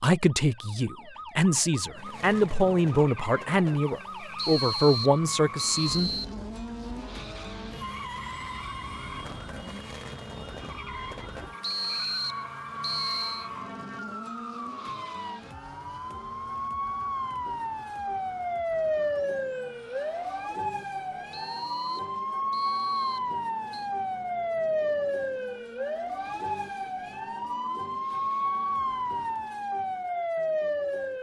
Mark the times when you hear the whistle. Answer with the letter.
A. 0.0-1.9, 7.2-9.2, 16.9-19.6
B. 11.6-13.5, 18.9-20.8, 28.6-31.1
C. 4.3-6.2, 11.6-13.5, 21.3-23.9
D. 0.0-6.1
C.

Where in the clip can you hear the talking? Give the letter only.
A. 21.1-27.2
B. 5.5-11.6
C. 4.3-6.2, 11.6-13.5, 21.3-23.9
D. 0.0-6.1
D.